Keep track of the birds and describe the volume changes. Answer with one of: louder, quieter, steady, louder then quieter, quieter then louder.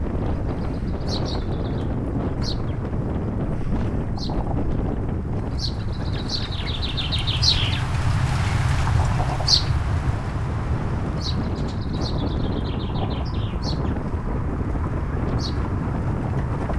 louder then quieter.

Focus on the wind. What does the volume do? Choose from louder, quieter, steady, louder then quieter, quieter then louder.
quieter then louder.